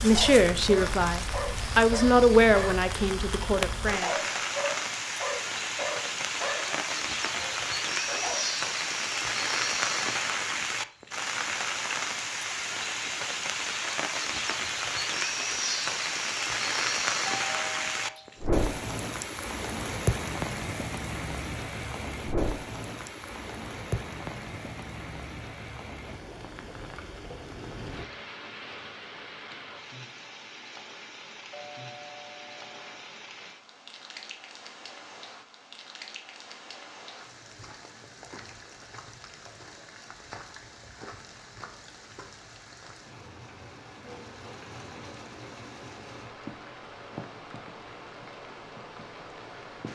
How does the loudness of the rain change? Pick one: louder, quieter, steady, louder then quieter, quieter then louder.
quieter.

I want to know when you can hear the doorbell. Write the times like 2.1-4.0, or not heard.
17.4-18.4, 31.5-33.1.